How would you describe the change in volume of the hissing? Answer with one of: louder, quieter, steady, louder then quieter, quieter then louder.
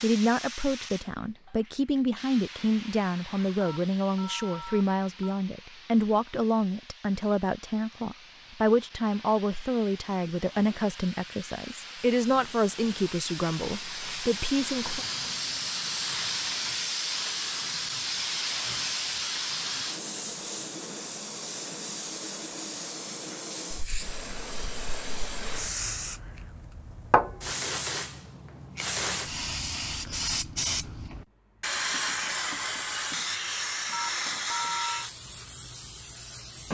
louder.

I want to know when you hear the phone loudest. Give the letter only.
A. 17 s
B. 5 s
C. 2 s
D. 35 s
D.